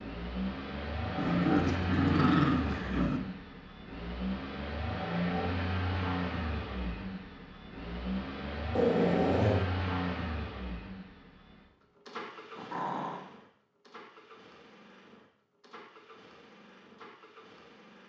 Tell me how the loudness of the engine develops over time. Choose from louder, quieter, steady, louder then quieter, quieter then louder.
quieter.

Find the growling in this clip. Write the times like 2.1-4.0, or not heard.
1.1-3.2, 8.8-9.7, 12.6-13.2.